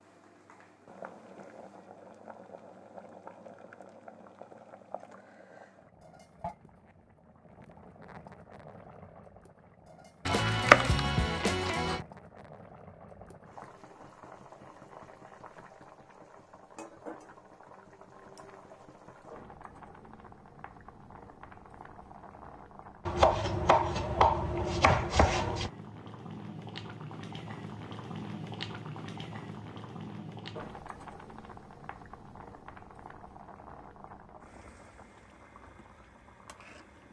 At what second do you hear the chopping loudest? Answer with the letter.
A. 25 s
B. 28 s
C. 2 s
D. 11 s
D.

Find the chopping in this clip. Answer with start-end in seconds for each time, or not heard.
10.2-12.0, 23.1-25.7.